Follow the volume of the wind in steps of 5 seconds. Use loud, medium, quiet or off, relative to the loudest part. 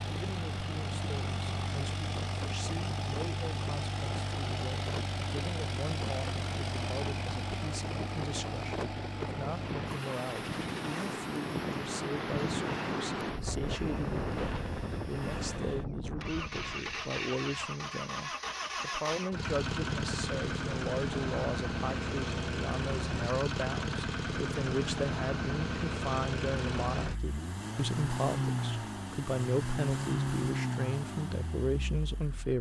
medium, medium, loud, medium, off, off, off.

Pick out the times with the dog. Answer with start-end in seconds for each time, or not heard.
not heard.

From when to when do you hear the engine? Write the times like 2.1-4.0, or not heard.
0.0-32.5.